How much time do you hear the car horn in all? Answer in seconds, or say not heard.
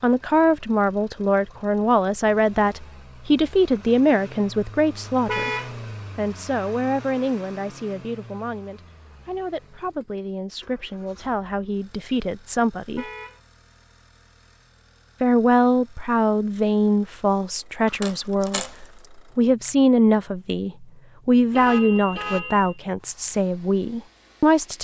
2 s.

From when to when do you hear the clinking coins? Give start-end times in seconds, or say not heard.
17.9-19.1.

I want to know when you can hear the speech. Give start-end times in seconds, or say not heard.
0.0-5.5, 6.2-13.1, 15.2-24.7.